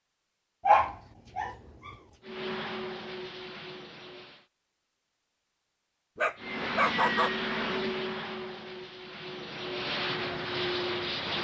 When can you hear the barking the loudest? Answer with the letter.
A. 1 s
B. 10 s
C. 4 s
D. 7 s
A.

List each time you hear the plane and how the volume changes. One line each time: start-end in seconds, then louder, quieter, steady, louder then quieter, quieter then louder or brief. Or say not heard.
2.2-4.5 brief
6.3-11.3 quieter then louder.